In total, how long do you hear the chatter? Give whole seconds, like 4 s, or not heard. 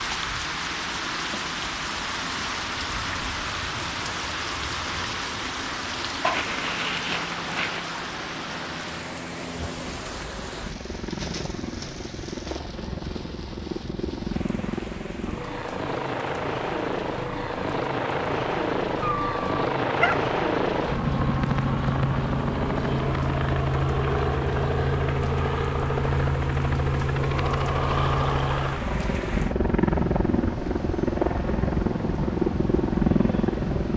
not heard.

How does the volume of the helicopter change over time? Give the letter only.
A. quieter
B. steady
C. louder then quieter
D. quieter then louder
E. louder
E.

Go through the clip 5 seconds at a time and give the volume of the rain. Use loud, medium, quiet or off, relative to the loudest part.
loud, loud, medium, quiet, quiet, medium, medium.